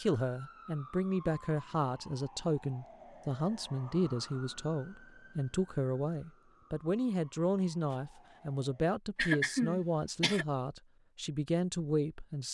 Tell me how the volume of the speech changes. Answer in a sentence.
The volume of the speech stays about the same.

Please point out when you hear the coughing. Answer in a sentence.
The coughing can be heard from 9.2 to 10.4 s.